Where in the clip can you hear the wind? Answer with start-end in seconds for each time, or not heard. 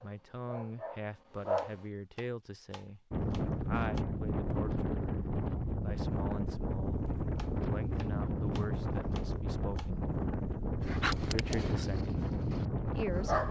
3.1-13.4.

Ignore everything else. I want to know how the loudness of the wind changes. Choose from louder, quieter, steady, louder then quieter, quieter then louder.
steady.